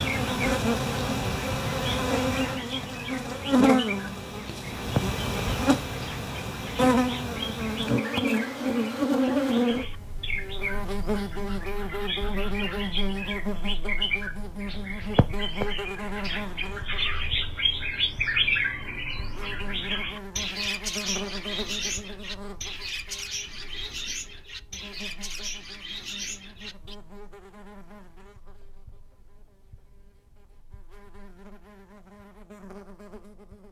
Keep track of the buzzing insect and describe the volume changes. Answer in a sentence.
The volume of the buzzing insect goes down.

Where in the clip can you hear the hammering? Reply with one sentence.
You can't hear the hammering here.